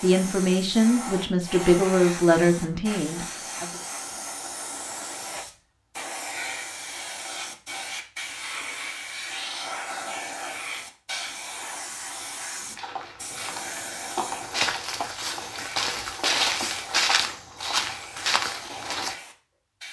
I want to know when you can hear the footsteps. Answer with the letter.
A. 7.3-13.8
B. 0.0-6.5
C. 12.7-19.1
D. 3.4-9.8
C.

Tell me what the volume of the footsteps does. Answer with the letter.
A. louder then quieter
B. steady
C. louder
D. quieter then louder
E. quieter
C.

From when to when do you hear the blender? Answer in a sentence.
You can't hear the blender here.